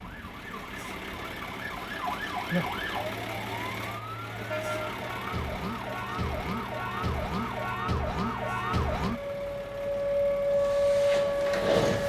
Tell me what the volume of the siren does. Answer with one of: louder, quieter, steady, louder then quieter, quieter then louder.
louder.